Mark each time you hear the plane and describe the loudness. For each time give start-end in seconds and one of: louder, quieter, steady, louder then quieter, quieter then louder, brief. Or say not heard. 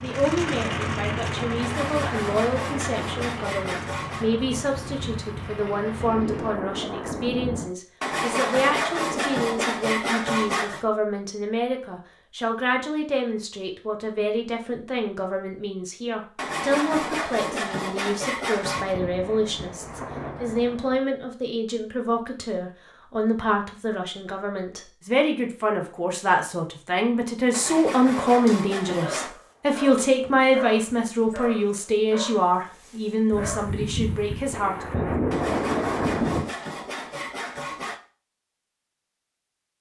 0.0-6.5 quieter.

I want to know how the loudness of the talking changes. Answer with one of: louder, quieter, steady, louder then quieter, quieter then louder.
louder.